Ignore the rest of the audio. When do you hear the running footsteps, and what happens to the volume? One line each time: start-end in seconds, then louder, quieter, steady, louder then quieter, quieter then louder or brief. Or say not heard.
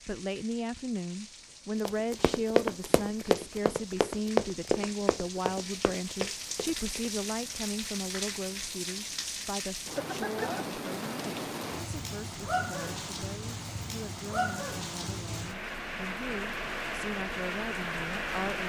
1.9-7.1 quieter.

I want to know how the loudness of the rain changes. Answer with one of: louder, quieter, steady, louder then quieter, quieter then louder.
louder.